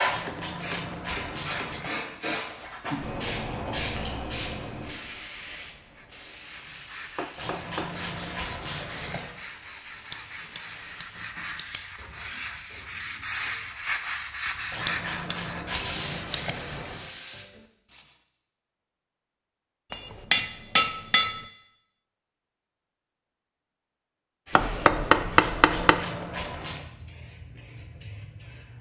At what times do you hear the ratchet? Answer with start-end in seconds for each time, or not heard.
0.1-1.9, 7.3-9.3, 14.7-17.1, 25.4-26.9.